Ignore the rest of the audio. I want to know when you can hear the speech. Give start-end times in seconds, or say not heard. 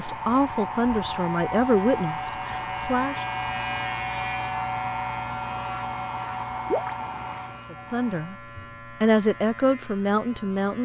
0.0-3.2, 7.7-8.3, 9.0-10.8.